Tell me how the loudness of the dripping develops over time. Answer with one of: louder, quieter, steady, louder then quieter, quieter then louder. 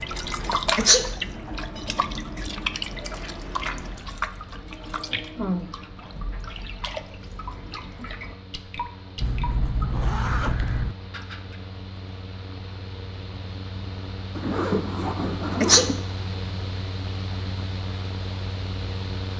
quieter.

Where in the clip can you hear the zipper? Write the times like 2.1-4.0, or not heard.
0.3-0.8, 9.2-10.9, 14.3-16.1.